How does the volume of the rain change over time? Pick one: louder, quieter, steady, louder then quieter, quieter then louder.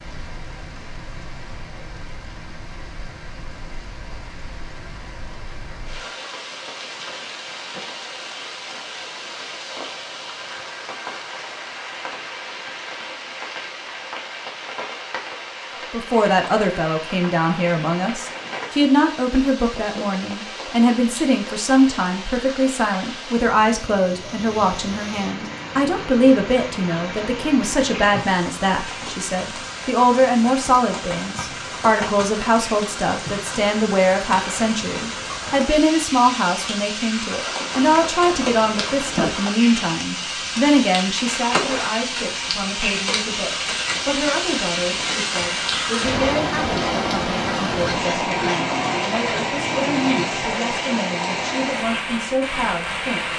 louder.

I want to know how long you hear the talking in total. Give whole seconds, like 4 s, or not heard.
37 s.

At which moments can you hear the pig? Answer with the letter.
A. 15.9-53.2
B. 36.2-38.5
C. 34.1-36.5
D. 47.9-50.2
D.